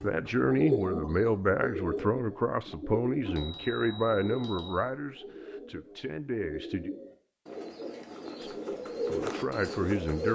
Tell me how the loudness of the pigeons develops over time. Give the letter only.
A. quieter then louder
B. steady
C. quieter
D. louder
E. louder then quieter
A.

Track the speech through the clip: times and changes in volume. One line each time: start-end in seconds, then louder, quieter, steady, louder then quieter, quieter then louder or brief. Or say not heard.
0.0-6.9 quieter
8.3-10.3 brief.